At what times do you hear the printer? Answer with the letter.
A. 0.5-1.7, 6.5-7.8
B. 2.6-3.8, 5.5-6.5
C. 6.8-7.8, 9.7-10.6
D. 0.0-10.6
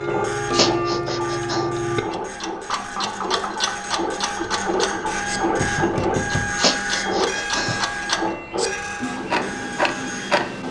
D.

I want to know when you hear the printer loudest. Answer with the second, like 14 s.
6 s.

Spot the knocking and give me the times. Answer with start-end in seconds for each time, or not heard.
2.6-3.8, 5.5-6.5.